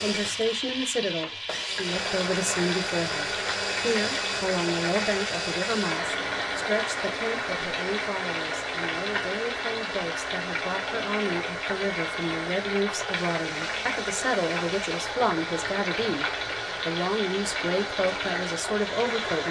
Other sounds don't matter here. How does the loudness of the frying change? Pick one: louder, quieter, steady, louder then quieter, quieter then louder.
steady.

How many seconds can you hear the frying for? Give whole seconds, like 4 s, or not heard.
19 s.